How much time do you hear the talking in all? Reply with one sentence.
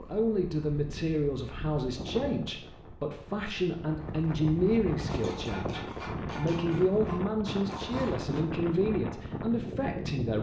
The talking can be heard for 10 seconds in total.